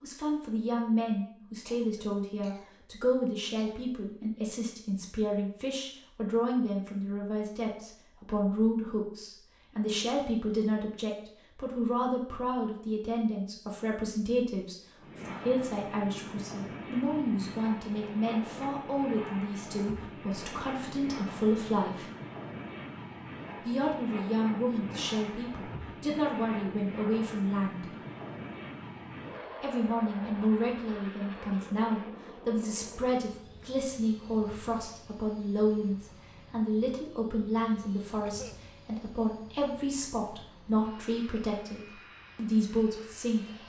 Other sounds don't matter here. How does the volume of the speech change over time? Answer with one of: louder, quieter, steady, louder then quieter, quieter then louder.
steady.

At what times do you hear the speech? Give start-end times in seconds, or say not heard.
0.0-22.1, 23.6-27.9, 29.6-43.6.